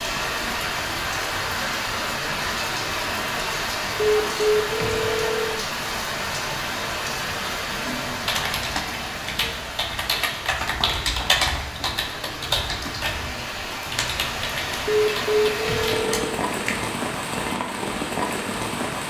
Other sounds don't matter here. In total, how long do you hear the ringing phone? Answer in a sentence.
The ringing phone can be heard for 3 seconds in total.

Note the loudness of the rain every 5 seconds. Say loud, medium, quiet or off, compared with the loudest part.
loud, loud, medium, loud.